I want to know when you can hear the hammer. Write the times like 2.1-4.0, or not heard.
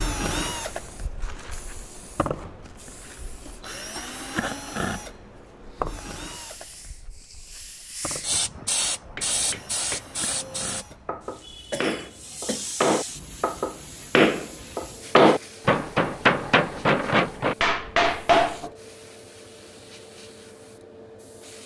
9.0-18.7.